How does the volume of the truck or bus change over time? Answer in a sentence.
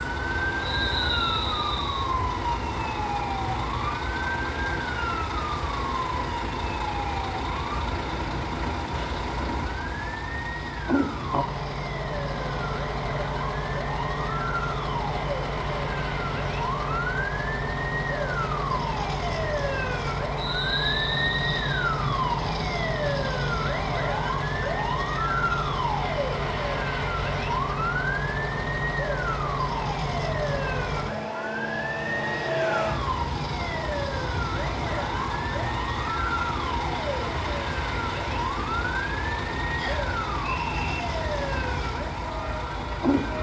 The loudness of the truck or bus stays about the same.